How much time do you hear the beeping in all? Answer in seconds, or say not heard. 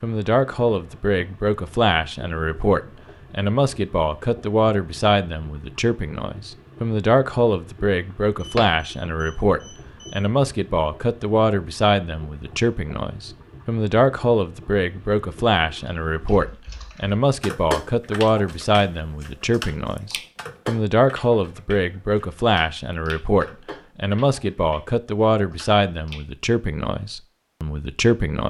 2 s.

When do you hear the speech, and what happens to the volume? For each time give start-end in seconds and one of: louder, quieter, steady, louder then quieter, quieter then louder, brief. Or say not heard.
0.0-28.4 steady.